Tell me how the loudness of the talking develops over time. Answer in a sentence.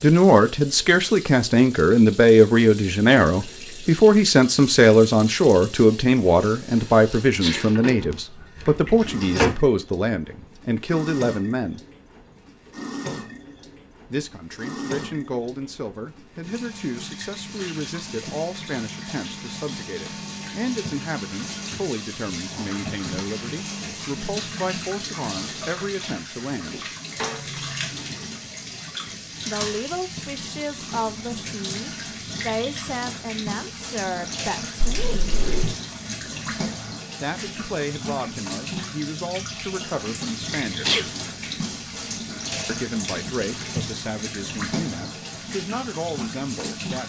The volume of the talking goes down.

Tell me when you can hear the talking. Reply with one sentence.
You can hear the talking from 0.0 to 11.8 s, from 14.1 to 26.9 s, from 29.4 to 35.4 s, from 37.2 to 41.0 s and from 42.6 to 47.0 s.